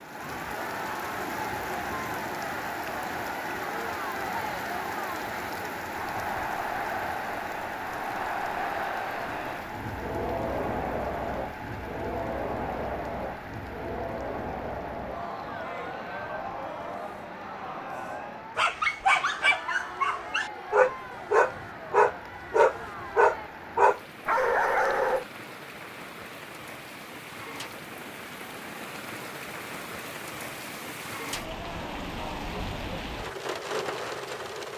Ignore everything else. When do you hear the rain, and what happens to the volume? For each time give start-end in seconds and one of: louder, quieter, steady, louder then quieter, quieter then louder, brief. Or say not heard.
0.0-34.7 quieter then louder.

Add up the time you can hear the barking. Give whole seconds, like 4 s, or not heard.
7 s.